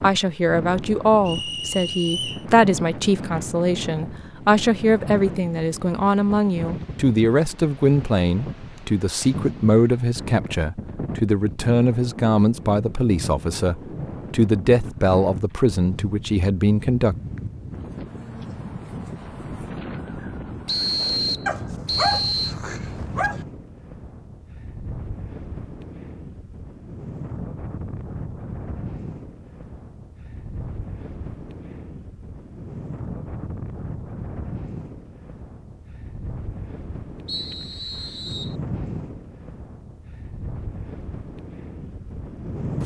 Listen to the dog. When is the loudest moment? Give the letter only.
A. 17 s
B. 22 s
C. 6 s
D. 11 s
B.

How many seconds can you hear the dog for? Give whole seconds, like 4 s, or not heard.
2 s.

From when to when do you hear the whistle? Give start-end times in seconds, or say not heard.
1.2-2.5, 20.6-22.6, 37.2-38.5.